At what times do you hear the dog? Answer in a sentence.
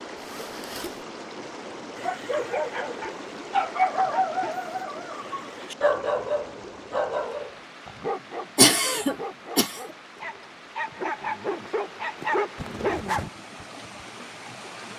You can hear the dog from 1.9 to 13.3 s.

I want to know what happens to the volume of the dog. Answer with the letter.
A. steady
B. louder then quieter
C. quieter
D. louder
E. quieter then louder
E.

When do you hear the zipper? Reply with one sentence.
The zipper can be heard from 0.1 to 1.1 s and from 12.6 to 13.3 s.